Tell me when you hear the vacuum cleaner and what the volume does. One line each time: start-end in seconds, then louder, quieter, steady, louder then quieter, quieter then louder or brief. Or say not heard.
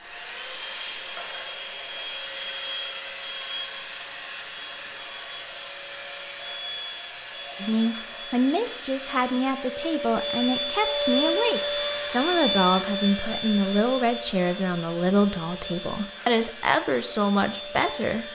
0.0-18.3 louder then quieter.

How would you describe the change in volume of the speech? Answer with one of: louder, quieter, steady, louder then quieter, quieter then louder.
steady.